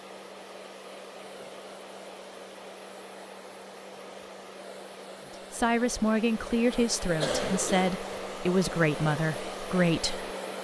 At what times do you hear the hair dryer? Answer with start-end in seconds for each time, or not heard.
0.0-10.5.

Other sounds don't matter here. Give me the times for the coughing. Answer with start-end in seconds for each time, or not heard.
7.2-8.1.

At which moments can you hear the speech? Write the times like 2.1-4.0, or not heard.
5.5-10.3.